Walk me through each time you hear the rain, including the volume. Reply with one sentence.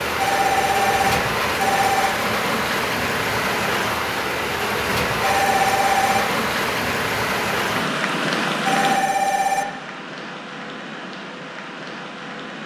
You can hear the rain from 0.0 to 12.6 s, getting quieter.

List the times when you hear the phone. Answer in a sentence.
The phone can be heard from 0.2 to 2.1 s, from 5.2 to 6.2 s and from 8.7 to 9.7 s.